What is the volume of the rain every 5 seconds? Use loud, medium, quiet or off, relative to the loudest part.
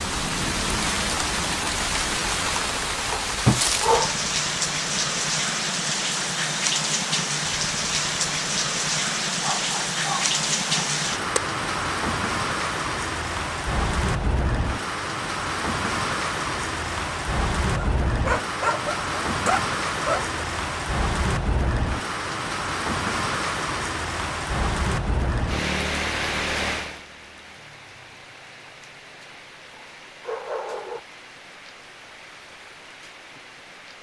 loud, loud, loud, loud, loud, medium, quiet.